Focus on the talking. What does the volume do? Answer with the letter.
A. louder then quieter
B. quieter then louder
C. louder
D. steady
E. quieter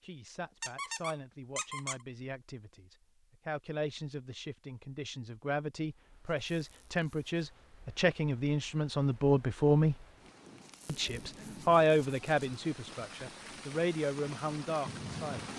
A.